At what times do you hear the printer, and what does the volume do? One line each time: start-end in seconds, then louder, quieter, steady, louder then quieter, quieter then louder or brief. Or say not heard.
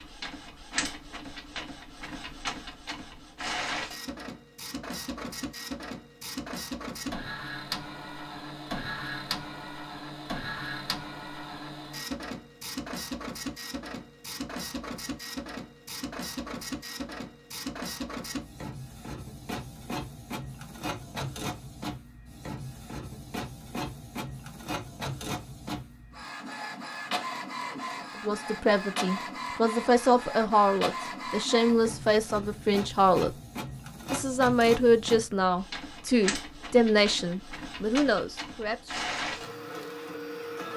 0.0-40.7 steady.